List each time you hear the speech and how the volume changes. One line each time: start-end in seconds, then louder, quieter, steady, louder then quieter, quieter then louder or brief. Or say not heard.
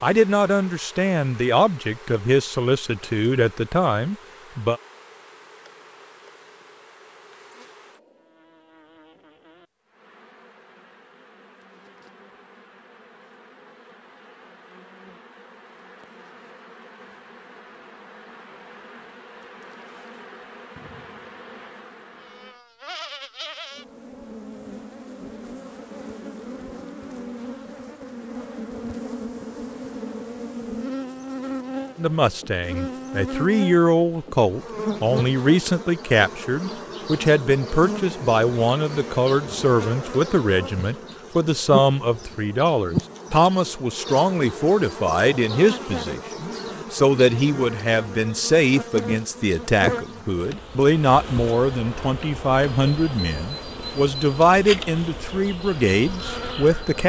0.0-4.8 steady
31.9-57.0 steady.